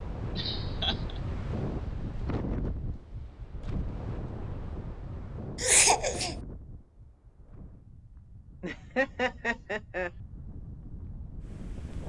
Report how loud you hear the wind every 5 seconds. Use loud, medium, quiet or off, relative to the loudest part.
loud, medium, medium.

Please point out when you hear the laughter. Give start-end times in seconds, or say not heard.
0.3-1.2, 5.5-6.4, 8.6-10.1.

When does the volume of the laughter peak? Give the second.
6 s.